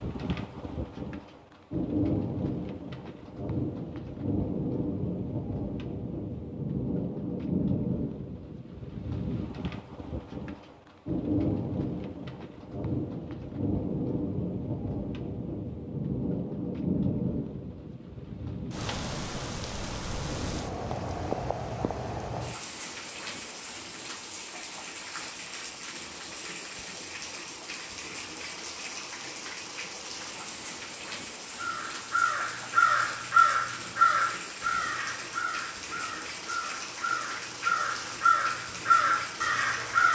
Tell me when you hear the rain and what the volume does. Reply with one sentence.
You can hear the rain from 0.0 to 40.1 s, getting quieter.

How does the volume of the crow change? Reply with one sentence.
The volume of the crow goes down, then up.